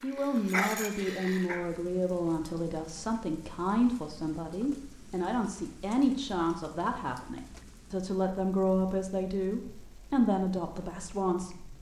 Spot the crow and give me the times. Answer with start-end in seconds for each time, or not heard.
not heard.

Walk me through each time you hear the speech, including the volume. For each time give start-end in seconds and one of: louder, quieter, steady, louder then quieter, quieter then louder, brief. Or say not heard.
0.0-11.7 steady.